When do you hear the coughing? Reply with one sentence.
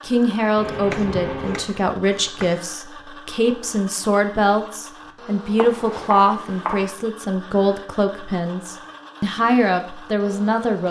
You can hear the coughing from 0.6 to 1.6 s.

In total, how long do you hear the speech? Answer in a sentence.
The speech can be heard for 11 seconds in total.